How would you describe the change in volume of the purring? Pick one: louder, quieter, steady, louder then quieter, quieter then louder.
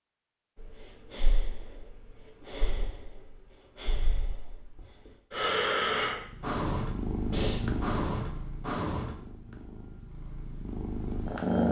quieter then louder.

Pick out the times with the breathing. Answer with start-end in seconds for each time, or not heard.
0.6-9.1.